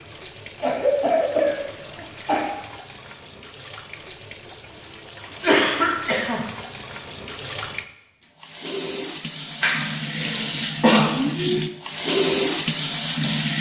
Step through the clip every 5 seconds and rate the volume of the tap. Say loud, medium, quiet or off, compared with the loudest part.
quiet, medium, loud.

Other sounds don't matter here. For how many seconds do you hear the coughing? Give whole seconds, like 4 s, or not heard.
4 s.